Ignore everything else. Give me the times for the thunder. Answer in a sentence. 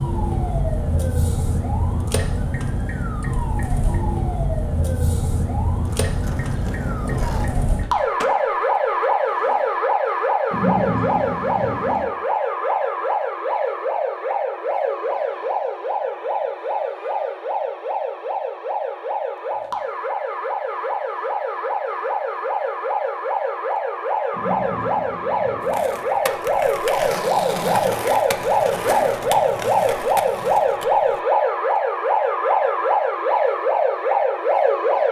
You can hear the thunder from 10.5 to 12.1 s and from 24.3 to 25.9 s.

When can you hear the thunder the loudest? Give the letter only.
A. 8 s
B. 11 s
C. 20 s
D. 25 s
B.